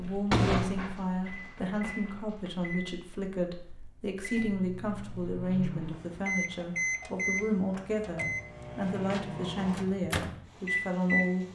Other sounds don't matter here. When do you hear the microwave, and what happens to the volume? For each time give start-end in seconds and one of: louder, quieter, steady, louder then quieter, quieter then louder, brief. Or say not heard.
0.0-11.5 quieter then louder.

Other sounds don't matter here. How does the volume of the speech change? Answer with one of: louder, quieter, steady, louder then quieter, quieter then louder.
steady.